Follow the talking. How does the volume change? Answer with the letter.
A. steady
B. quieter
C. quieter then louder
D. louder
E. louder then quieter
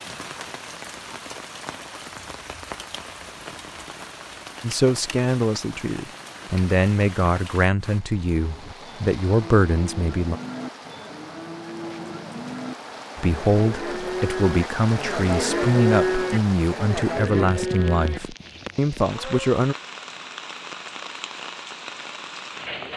A.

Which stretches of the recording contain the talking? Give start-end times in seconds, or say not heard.
4.6-10.3, 13.2-19.8.